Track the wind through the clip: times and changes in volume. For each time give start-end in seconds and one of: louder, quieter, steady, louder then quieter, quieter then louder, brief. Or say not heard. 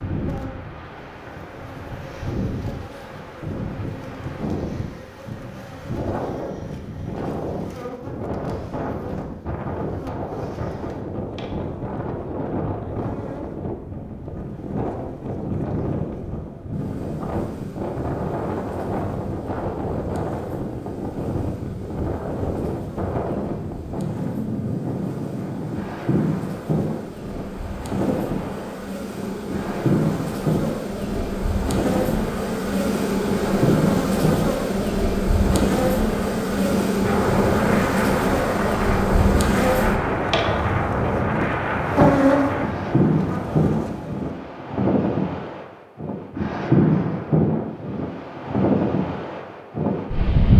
0.0-50.5 louder.